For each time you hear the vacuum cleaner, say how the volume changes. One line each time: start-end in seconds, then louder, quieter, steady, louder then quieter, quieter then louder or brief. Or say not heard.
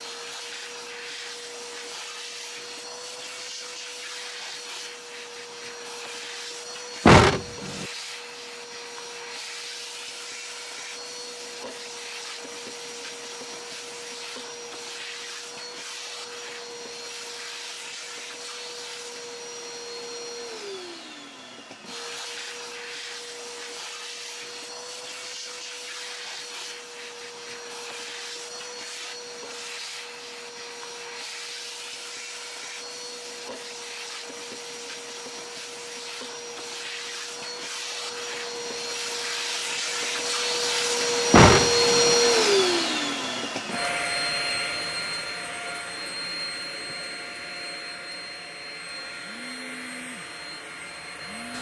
0.0-51.5 louder.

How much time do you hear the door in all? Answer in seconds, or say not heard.
2 s.